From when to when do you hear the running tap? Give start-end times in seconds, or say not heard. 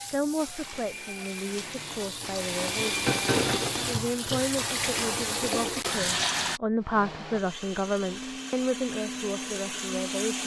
0.0-6.6.